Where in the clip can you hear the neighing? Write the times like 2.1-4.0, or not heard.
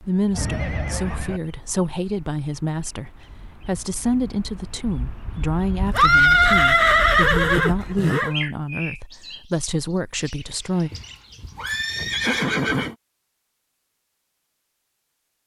0.3-1.4, 5.8-8.3, 10.9-12.9.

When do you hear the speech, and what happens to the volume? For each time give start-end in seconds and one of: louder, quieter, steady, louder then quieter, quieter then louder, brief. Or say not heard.
0.1-10.9 steady.